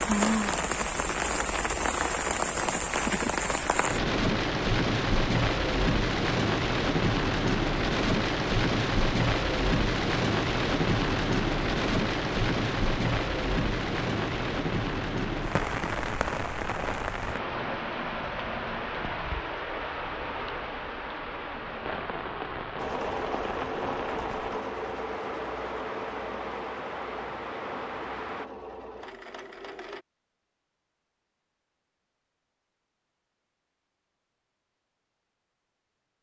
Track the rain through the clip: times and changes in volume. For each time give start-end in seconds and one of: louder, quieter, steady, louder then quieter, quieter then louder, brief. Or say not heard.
0.0-28.5 quieter.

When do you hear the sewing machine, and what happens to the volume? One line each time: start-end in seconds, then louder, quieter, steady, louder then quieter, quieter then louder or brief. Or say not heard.
22.8-30.1 quieter.